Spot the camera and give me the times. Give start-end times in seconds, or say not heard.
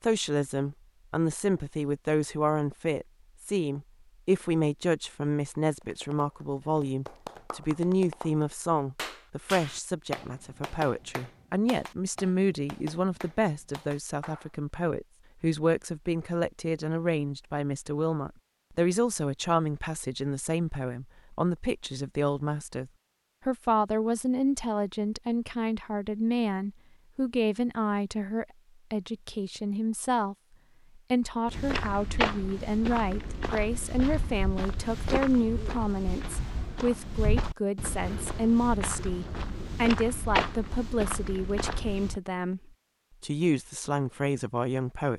not heard.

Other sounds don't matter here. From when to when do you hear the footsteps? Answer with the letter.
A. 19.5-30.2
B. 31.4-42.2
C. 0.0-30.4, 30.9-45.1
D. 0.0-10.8
B.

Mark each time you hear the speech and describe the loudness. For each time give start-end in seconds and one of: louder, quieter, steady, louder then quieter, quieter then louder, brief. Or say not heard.
0.0-30.4 steady
30.9-45.1 steady.